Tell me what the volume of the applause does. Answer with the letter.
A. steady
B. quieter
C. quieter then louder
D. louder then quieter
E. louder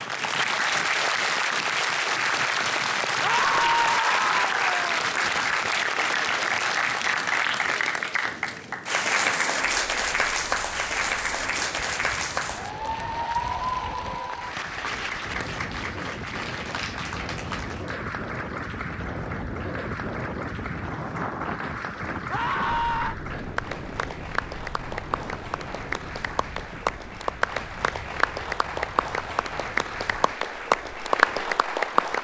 C.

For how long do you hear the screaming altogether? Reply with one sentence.
The screaming can be heard for 3 seconds in total.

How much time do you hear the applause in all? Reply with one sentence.
You can hear the applause for 32 seconds altogether.